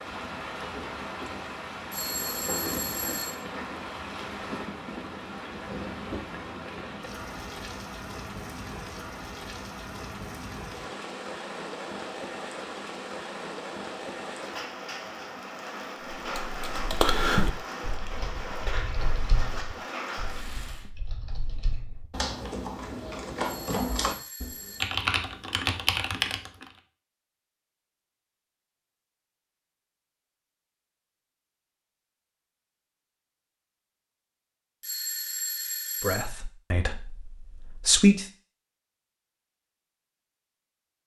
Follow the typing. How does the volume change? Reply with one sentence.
The loudness of the typing goes down, then up.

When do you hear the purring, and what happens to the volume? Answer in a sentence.
You can't hear the purring here.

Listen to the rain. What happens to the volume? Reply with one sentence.
The volume of the rain stays about the same.